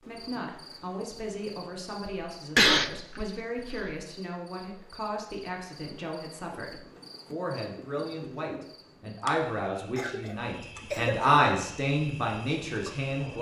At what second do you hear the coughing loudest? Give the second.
3 s.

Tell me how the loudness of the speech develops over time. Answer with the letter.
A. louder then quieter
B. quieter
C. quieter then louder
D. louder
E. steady
D.